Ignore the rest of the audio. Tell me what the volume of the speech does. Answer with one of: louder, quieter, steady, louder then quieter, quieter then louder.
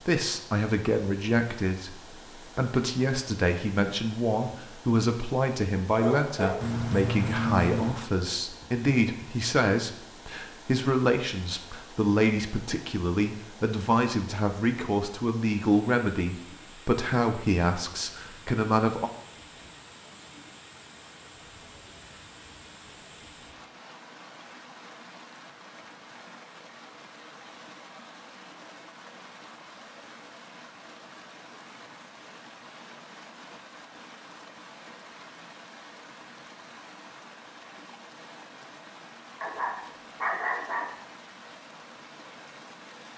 steady.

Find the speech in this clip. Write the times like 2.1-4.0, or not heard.
0.1-19.1.